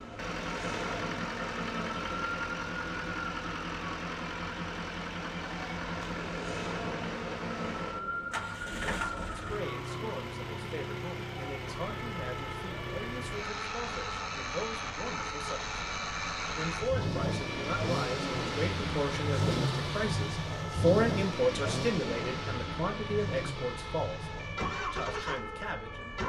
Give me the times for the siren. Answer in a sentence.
The siren can be heard from 0.0 to 26.2 s.